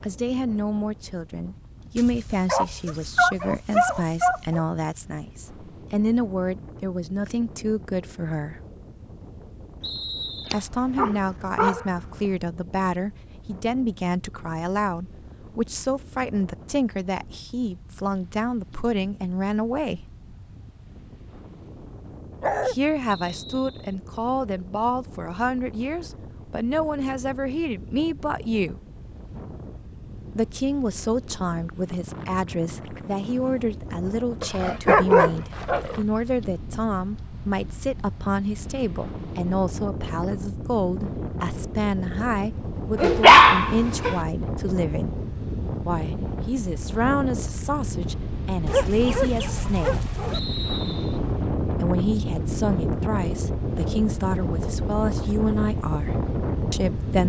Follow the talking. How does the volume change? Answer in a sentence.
The loudness of the talking stays about the same.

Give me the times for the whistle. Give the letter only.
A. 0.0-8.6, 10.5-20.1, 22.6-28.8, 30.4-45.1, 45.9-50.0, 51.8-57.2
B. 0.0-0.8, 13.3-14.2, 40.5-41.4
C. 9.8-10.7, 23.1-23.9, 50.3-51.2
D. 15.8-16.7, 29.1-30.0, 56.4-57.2
C.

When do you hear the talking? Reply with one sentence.
You can hear the talking from 0.0 to 8.6 s, from 10.5 to 20.1 s, from 22.6 to 28.8 s, from 30.4 to 45.1 s, from 45.9 to 50.0 s and from 51.8 to 57.2 s.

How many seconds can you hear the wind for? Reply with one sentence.
You can hear the wind for 57 seconds altogether.